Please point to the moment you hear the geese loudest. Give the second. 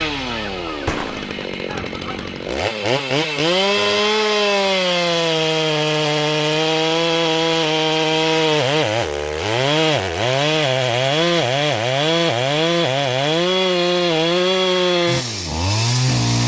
1 s.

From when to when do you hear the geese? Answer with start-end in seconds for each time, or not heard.
0.0-2.5.